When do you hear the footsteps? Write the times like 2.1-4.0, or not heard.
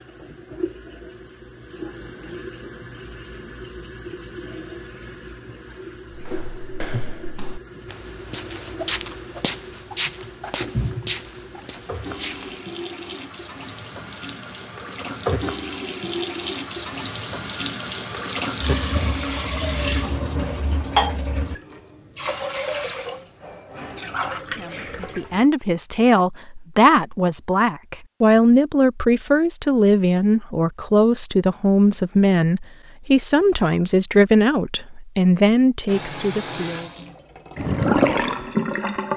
6.2-12.7.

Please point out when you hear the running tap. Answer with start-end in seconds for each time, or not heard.
0.0-25.4, 35.9-39.1.